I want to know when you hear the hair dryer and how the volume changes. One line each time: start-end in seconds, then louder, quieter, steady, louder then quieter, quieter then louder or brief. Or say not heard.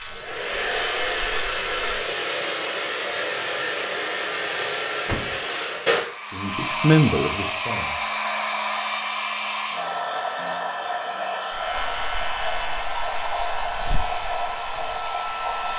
0.0-15.7 steady.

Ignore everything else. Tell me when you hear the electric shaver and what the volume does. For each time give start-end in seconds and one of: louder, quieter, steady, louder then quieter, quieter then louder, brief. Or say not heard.
0.0-1.9 brief
11.5-15.7 quieter.